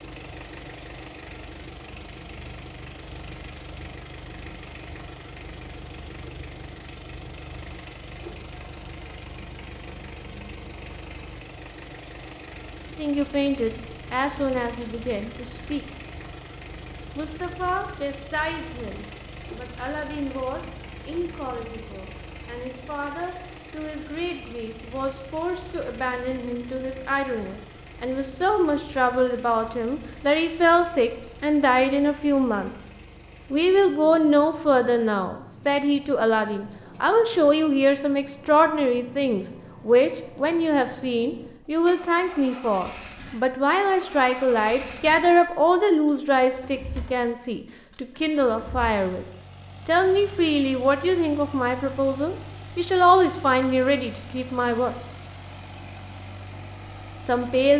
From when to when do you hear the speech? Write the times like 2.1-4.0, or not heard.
12.9-15.8, 17.1-32.8, 33.5-49.2, 49.9-55.0, 57.2-57.7.